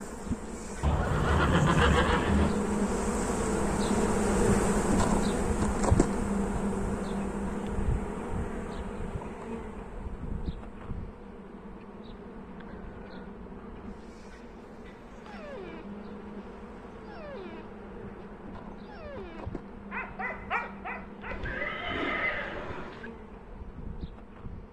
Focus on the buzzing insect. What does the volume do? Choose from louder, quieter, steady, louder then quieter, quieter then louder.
quieter.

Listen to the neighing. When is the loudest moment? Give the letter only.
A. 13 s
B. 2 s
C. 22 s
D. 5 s
B.